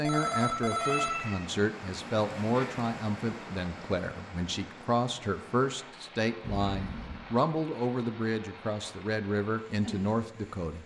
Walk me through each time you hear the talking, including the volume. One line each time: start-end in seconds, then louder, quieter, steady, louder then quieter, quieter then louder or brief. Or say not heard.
0.0-10.8 steady.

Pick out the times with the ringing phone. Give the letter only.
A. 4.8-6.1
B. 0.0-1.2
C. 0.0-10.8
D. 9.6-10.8
B.